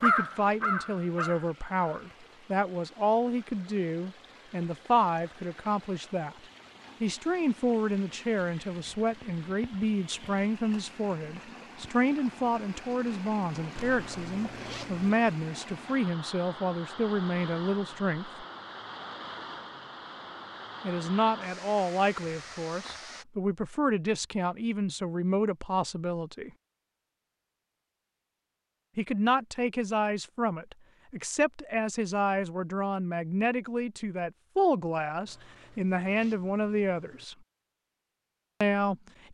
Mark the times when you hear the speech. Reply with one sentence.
You can hear the speech from 0.0 to 6.3 s, from 7.0 to 18.4 s, from 20.8 to 26.5 s, from 28.9 to 37.4 s and from 38.6 to 39.2 s.